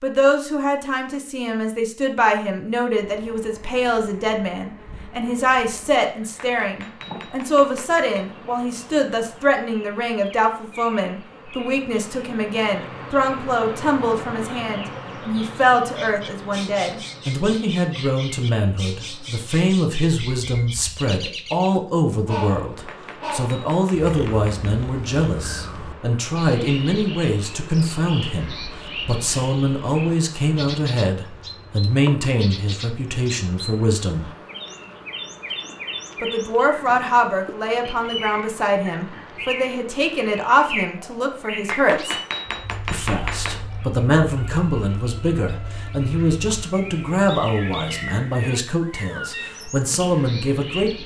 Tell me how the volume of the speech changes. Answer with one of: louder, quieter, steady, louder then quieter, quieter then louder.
steady.